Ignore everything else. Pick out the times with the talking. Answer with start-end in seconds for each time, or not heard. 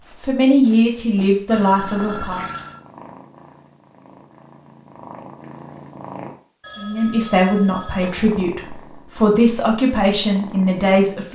0.2-2.5, 6.8-11.3.